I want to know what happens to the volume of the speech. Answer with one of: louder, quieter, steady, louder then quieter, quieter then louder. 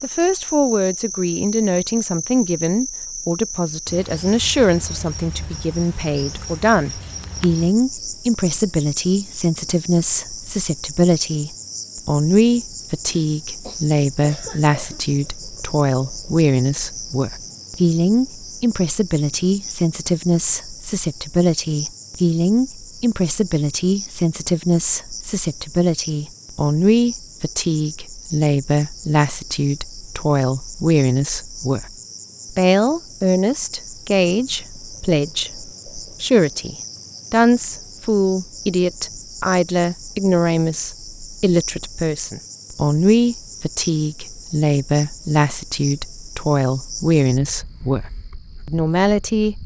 steady.